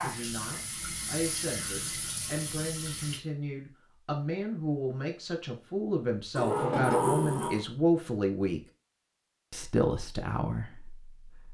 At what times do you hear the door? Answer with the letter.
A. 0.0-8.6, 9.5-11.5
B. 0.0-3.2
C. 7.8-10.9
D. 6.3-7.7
D.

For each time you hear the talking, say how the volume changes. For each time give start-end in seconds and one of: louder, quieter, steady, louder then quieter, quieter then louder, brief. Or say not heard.
0.0-8.6 louder
9.5-11.5 brief.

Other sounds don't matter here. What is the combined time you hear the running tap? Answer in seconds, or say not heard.
3 s.